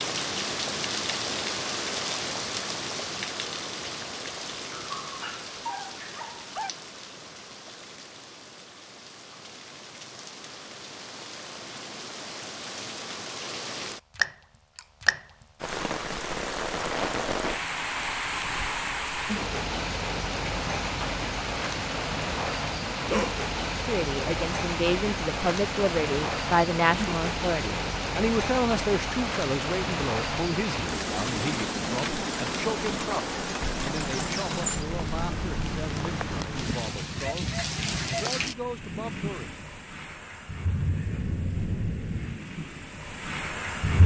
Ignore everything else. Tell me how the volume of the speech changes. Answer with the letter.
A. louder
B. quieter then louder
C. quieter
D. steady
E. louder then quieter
C.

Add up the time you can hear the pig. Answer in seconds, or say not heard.
not heard.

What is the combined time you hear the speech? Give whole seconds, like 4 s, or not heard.
16 s.